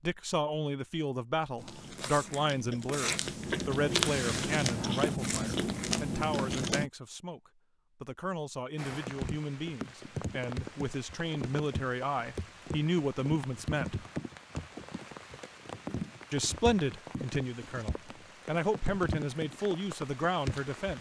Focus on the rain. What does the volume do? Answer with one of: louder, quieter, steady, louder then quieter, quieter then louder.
steady.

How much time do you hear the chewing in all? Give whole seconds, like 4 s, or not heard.
5 s.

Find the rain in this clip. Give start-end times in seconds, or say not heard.
8.8-20.9.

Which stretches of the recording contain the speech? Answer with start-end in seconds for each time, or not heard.
0.0-14.1, 16.3-20.9.